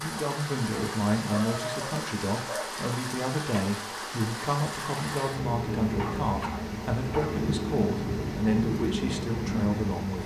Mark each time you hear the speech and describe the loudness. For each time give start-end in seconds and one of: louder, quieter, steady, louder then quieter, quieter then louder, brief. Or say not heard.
0.0-10.2 steady.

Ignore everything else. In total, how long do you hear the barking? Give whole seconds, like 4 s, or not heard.
3 s.